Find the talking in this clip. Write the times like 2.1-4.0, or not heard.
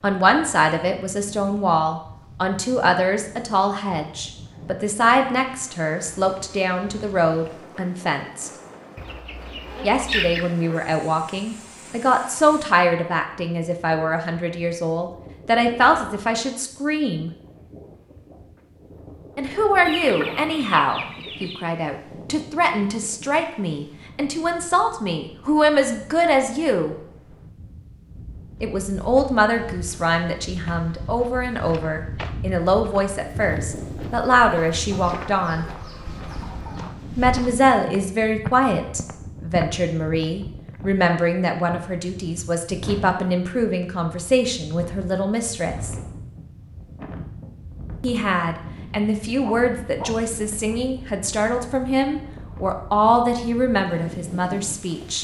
0.0-8.5, 9.8-17.3, 19.4-26.9, 28.6-35.6, 37.1-46.0, 48.0-55.1.